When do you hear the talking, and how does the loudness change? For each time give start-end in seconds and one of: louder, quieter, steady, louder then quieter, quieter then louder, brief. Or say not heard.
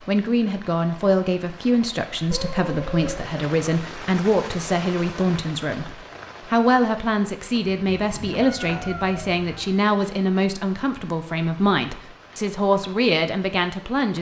0.1-14.1 steady.